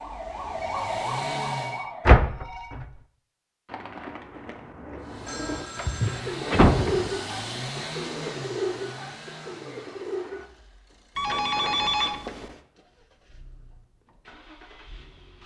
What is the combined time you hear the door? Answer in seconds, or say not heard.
3 s.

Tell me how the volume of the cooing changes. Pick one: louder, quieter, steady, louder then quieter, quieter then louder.
louder then quieter.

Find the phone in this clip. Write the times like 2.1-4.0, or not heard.
0.6-2.8, 5.2-6.2, 11.2-12.6.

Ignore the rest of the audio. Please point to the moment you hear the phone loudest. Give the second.
12 s.